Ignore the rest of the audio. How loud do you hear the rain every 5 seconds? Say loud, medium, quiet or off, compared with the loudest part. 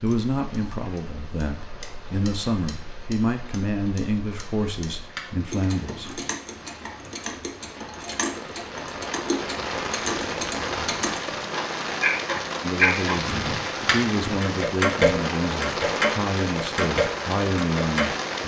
quiet, medium, loud, loud.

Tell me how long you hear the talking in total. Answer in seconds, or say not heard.
12 s.